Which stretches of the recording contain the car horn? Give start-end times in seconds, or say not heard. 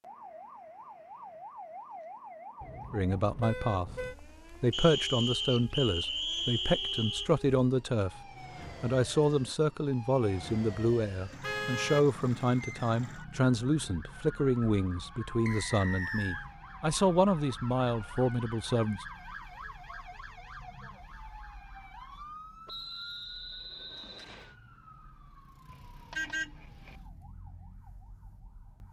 2.6-4.2, 11.4-12.1, 25.6-26.9.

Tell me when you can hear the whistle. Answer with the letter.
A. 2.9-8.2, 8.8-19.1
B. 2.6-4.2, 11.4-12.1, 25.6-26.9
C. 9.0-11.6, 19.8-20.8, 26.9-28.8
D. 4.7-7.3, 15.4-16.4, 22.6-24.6
D.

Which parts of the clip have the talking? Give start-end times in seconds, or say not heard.
2.9-8.2, 8.8-19.1.